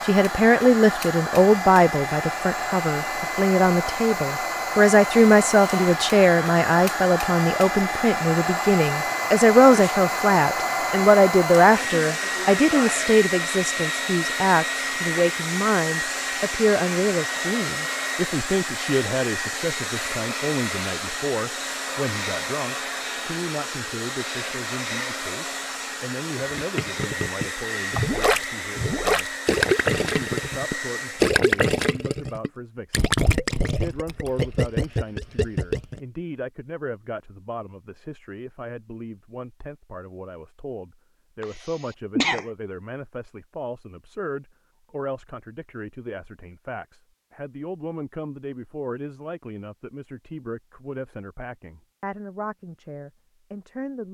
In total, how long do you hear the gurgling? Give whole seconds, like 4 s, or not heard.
10 s.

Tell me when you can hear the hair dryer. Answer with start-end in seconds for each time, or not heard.
0.0-31.3.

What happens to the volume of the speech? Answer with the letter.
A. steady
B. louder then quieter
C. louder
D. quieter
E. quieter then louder
D.